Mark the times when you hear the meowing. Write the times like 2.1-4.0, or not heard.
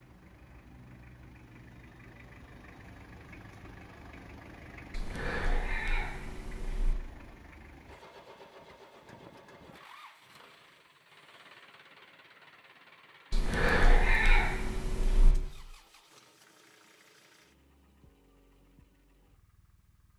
4.9-7.0, 13.3-15.3.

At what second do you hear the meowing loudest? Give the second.
14 s.